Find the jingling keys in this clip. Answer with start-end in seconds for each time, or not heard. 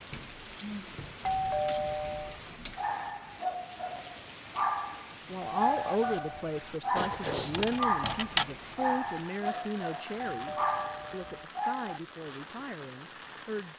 0.1-2.9, 7.0-8.5.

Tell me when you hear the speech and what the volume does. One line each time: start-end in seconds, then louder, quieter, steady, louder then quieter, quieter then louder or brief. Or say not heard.
5.2-13.7 quieter.